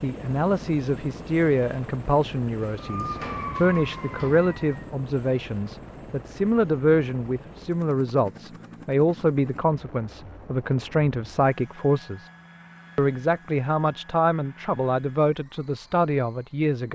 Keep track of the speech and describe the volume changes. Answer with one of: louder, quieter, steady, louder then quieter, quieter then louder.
steady.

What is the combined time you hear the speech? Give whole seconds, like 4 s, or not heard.
16 s.